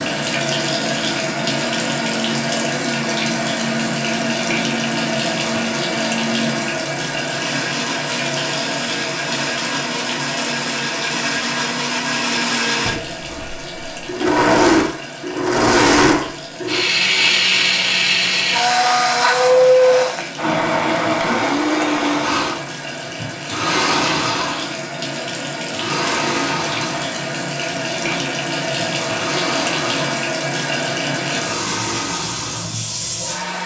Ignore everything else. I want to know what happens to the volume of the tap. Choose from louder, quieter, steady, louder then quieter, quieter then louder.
quieter then louder.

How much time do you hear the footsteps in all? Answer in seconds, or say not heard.
not heard.